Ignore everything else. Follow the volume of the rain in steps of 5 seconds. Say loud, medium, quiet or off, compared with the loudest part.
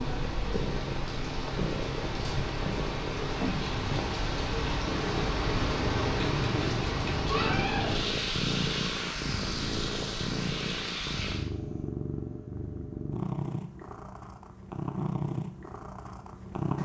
loud, loud, medium, off.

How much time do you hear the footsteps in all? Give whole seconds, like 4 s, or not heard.
not heard.